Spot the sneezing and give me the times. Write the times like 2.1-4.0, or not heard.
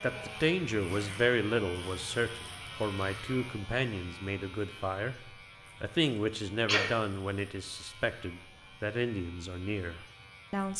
6.2-6.9.